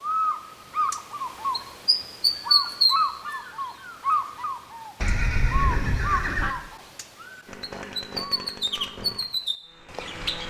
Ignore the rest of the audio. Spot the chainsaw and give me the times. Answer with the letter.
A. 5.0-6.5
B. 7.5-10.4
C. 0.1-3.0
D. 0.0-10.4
B.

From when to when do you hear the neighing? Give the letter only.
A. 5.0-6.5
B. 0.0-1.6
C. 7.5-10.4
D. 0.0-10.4
A.